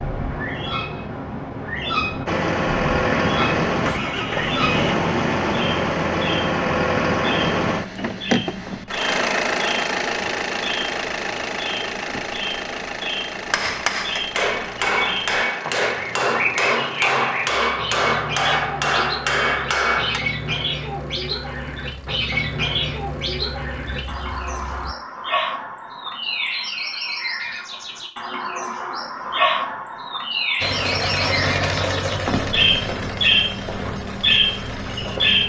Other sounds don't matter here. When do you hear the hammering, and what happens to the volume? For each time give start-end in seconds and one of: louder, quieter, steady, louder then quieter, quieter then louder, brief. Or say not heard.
13.4-20.2 steady.